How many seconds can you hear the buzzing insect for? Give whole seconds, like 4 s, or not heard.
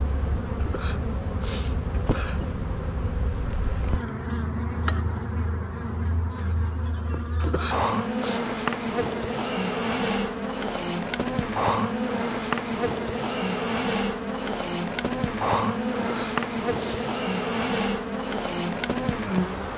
20 s.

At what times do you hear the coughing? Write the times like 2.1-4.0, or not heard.
0.6-2.5, 7.4-8.4, 15.9-17.1.